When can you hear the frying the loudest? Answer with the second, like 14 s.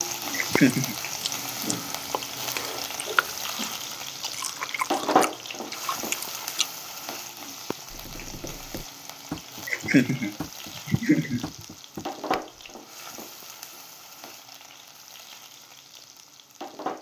5 s.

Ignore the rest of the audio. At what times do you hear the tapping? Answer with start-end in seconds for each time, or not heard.
7.9-12.4.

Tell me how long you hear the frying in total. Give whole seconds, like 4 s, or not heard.
17 s.